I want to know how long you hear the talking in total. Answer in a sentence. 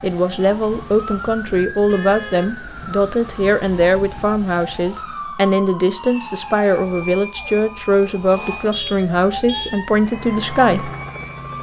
You can hear the talking for 11 seconds altogether.